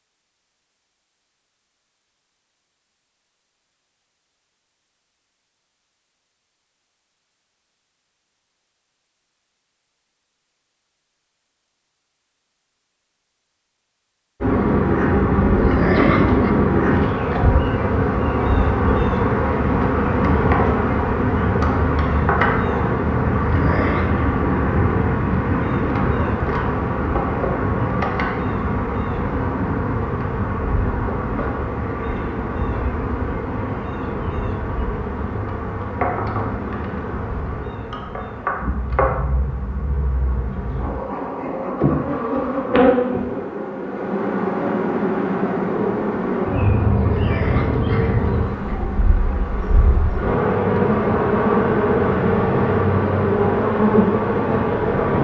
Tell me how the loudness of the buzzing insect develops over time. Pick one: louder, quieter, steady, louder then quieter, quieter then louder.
quieter then louder.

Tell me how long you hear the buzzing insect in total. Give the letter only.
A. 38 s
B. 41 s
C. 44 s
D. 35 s
B.